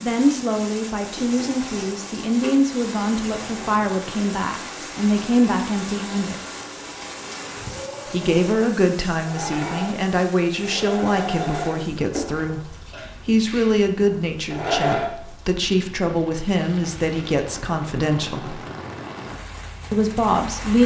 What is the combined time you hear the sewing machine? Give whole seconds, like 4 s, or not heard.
15 s.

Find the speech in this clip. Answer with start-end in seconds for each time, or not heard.
0.0-6.3, 8.1-18.6, 19.9-20.8.